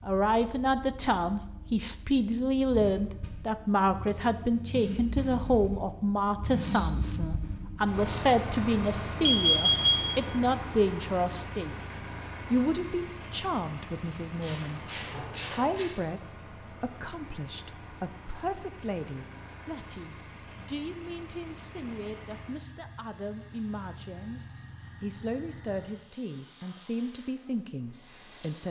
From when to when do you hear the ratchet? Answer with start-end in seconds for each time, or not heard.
14.4-15.9.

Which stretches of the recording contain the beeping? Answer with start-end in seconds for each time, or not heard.
9.2-10.6.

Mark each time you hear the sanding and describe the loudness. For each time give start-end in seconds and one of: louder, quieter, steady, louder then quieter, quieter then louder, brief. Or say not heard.
not heard.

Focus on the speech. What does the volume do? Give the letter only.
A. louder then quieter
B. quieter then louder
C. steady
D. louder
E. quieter
E.